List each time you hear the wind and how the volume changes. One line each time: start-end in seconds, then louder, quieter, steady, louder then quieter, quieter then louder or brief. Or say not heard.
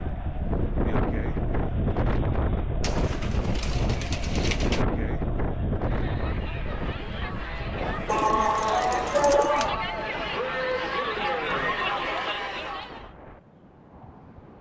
0.0-14.5 quieter.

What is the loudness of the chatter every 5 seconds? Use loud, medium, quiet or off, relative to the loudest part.
quiet, medium, loud.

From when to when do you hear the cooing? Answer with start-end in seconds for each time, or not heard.
2.8-4.8, 8.1-9.8.